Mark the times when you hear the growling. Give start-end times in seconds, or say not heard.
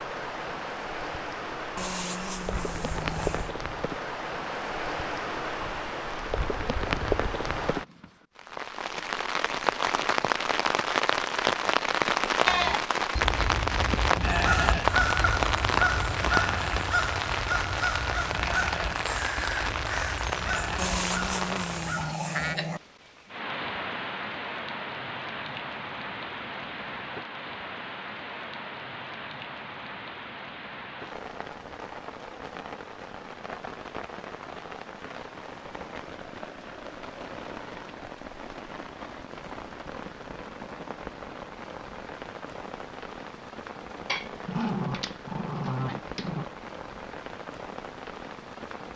1.8-3.5, 20.8-22.8, 44.0-46.5.